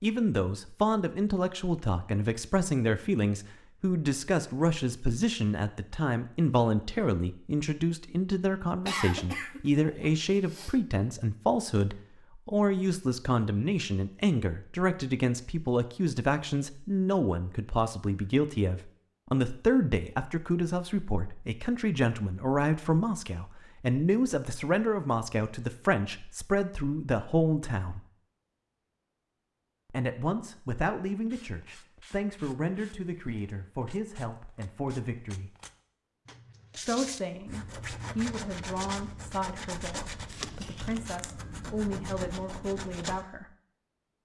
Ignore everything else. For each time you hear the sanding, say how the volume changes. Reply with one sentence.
The sanding can be heard from 31.2 to 43.2 s, getting louder.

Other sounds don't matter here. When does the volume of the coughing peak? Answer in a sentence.
The loudest moment of the coughing is at 9 seconds.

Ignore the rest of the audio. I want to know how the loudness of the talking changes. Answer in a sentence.
The loudness of the talking goes down.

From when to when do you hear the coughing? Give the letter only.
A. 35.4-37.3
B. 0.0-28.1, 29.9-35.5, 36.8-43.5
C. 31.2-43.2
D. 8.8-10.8
D.